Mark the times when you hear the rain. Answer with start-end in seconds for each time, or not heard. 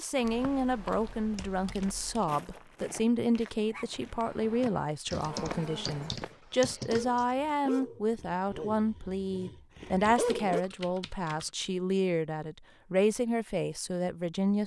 not heard.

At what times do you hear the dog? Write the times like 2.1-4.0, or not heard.
3.6-6.2, 6.8-10.7.